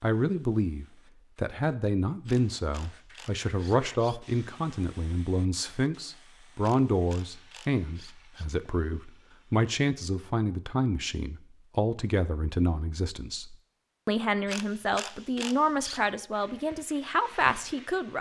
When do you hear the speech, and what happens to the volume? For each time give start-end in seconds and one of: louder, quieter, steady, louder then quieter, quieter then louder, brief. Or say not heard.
0.0-18.1 steady.